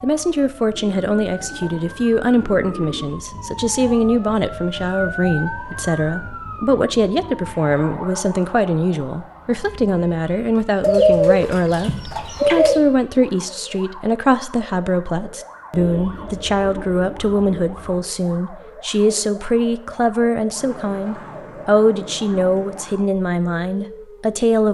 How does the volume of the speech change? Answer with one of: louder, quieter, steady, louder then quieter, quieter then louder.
steady.